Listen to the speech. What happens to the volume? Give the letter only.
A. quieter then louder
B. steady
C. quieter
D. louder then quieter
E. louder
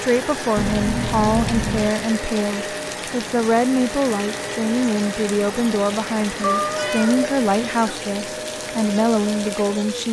B.